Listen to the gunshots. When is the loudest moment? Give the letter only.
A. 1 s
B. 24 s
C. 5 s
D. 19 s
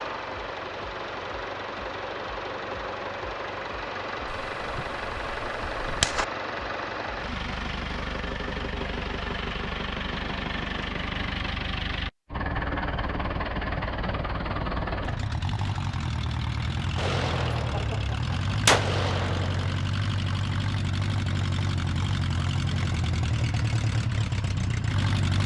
D.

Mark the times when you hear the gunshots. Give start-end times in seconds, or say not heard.
4.2-6.2, 16.9-19.8.